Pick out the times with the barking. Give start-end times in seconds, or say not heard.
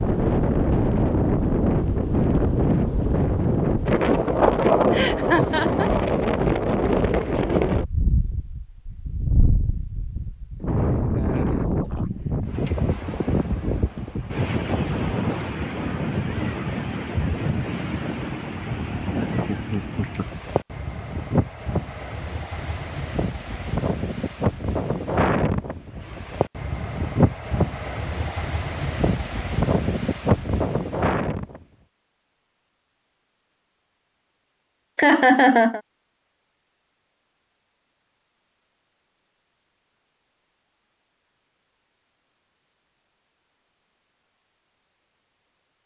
not heard.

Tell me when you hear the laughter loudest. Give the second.
35 s.